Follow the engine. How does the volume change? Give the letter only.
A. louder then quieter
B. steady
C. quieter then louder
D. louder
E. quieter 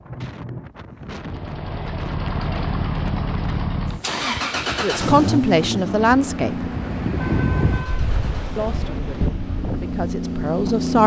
C.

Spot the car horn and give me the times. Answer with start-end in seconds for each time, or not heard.
0.1-0.7, 7.2-8.0.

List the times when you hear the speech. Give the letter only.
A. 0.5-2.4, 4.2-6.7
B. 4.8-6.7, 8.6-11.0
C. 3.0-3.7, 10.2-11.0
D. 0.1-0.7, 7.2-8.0
B.